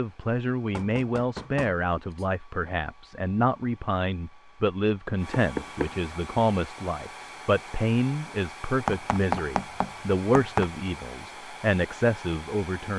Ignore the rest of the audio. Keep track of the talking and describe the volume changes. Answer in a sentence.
The volume of the talking stays about the same.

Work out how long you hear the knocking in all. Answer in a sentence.
You can hear the knocking for 4 seconds altogether.